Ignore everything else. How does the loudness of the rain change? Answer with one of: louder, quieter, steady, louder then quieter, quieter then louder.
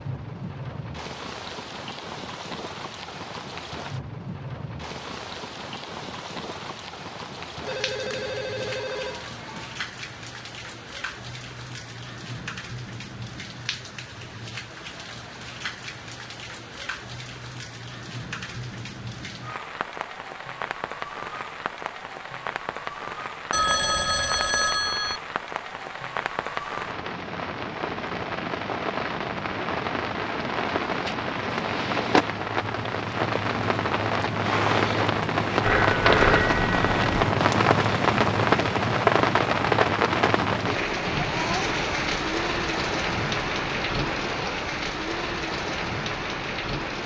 louder.